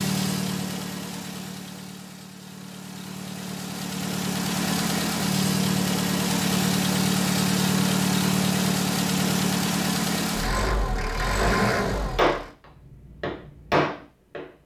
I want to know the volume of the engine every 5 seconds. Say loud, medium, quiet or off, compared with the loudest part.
medium, loud, loud.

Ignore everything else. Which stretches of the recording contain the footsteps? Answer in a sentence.
You can't hear the footsteps here.